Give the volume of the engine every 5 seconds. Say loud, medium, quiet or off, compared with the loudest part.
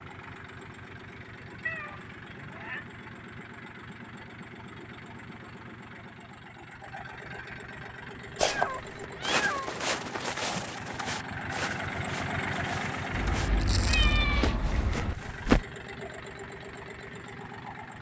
medium, medium, loud, medium.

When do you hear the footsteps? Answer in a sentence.
You can hear the footsteps from 8.3 to 15.7 s.